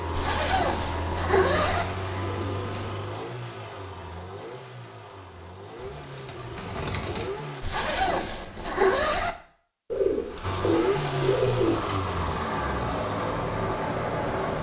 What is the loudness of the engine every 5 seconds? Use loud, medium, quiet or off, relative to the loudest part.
medium, medium, loud.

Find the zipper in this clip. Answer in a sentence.
You can hear the zipper from 0.1 to 1.9 s and from 7.6 to 9.3 s.